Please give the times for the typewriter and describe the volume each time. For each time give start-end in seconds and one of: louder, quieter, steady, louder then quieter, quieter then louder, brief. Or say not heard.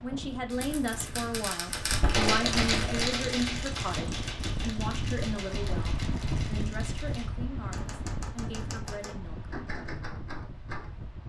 0.5-11.1 quieter.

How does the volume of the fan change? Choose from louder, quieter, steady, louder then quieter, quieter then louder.
louder then quieter.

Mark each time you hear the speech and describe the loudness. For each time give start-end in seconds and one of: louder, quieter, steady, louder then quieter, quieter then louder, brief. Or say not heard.
0.0-9.5 quieter.